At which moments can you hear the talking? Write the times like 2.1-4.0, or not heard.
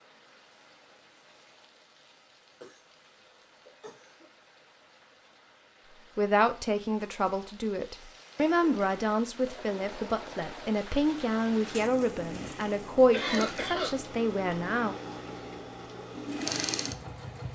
6.2-14.9.